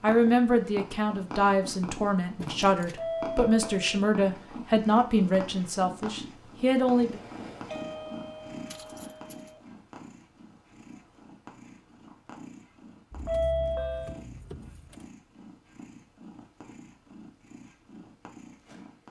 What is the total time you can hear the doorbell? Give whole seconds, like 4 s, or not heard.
4 s.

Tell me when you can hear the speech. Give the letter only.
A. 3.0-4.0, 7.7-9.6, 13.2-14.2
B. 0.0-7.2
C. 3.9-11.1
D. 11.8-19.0
B.